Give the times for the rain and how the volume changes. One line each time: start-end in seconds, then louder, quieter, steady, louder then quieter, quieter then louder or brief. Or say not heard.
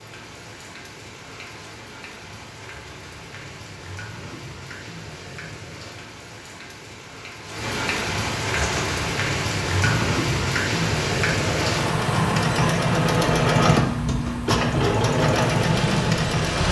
0.0-16.6 louder then quieter.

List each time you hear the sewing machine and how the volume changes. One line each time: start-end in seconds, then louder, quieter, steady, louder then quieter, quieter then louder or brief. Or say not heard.
8.5-16.6 louder.